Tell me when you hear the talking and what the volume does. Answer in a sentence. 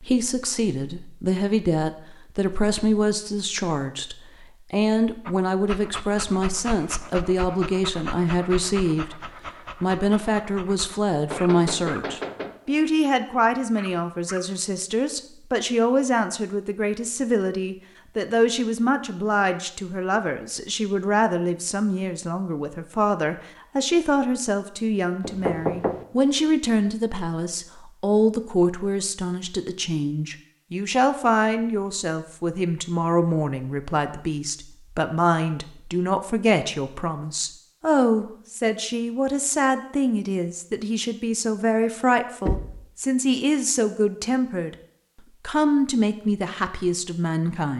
The talking can be heard from 0.0 to 9.2 s, at a steady volume; from 9.8 to 44.8 s, at a steady volume; and briefly from 45.5 to 47.7 s.